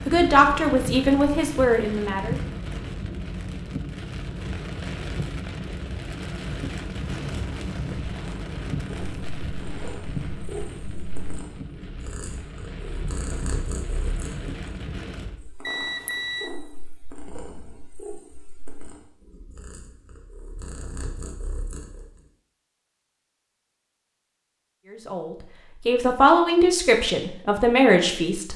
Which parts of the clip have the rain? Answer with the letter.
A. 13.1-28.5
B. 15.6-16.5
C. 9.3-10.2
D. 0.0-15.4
D.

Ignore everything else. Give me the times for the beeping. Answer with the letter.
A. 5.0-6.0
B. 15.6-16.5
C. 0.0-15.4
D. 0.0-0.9
B.